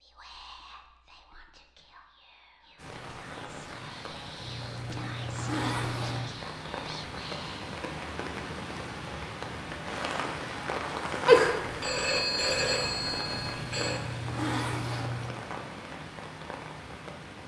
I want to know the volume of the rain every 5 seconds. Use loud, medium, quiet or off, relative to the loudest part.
medium, loud, loud, medium.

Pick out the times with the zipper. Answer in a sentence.
You can hear the zipper from 4.3 to 6.2 s and from 13.5 to 15.3 s.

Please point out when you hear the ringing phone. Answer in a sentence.
The ringing phone can be heard from 11.2 to 14.0 s.